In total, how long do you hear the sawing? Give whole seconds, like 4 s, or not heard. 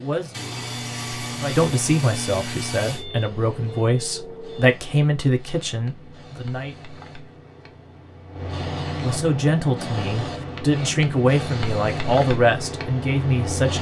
3 s.